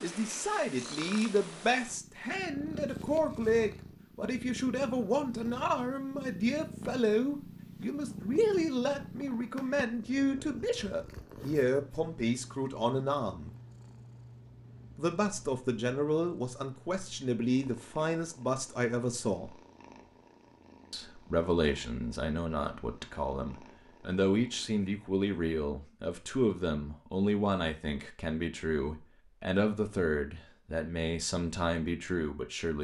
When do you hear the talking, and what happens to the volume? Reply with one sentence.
You can hear the talking from 0.0 to 13.6 s, at a steady volume; from 14.9 to 19.6 s, at a steady volume; and from 20.9 to 32.7 s, at a steady volume.